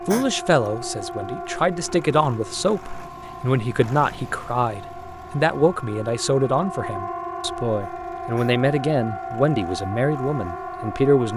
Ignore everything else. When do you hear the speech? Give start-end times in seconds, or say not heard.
0.1-11.3.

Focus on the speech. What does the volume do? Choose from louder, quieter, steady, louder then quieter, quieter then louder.
steady.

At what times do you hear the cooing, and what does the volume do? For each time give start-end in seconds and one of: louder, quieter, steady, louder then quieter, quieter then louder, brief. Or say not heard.
not heard.